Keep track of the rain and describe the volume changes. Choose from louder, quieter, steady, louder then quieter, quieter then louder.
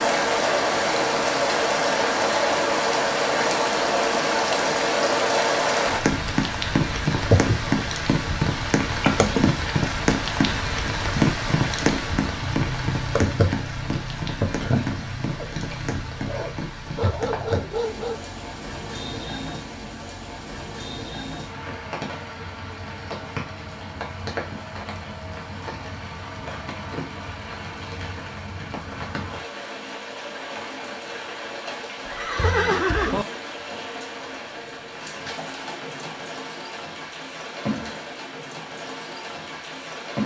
quieter.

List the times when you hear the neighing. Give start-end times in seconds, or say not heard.
32.0-33.2.